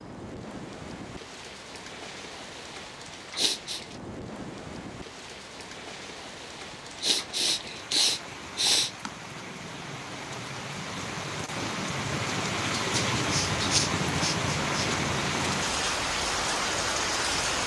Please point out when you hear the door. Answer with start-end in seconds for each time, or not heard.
not heard.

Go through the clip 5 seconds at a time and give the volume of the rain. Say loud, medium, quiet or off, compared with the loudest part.
quiet, quiet, loud, loud.